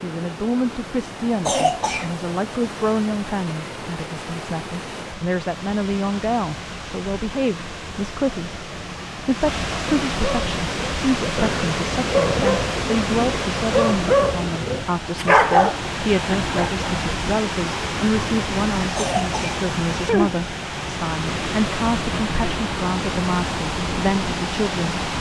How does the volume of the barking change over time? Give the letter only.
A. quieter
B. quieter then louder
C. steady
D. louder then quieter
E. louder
E.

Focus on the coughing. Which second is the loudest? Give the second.
2 s.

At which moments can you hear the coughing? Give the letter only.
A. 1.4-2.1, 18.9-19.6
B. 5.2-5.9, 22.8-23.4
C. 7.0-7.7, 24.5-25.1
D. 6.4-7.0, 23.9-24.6
A.